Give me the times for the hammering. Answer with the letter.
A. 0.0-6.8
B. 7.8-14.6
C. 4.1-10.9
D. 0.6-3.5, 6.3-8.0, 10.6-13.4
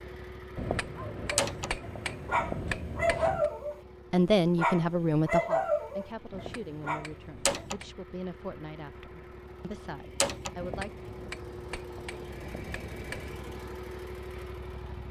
D.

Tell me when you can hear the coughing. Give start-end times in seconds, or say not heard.
not heard.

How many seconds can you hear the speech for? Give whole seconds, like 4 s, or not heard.
7 s.